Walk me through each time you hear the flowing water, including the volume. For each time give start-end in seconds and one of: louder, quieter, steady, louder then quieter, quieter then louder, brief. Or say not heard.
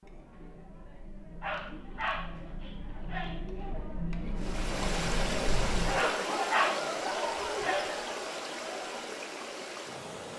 4.3-10.3 quieter.